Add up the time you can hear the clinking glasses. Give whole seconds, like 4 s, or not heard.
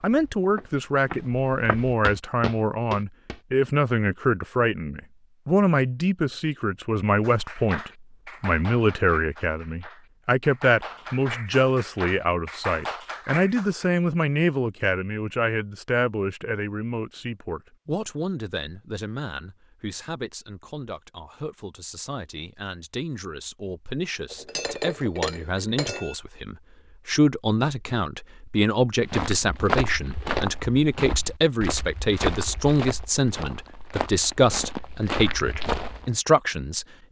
2 s.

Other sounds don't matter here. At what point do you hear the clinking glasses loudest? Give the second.
25 s.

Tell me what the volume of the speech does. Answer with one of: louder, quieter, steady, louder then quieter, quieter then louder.
quieter then louder.